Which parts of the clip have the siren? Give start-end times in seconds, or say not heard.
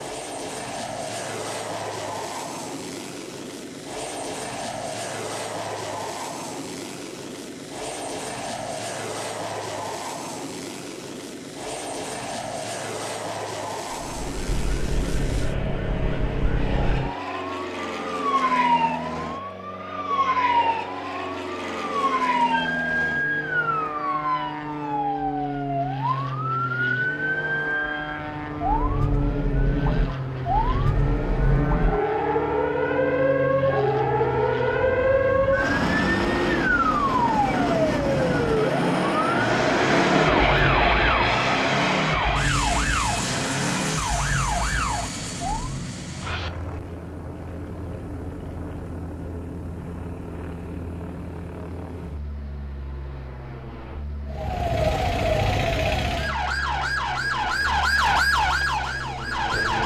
14.0-45.9, 54.3-59.8.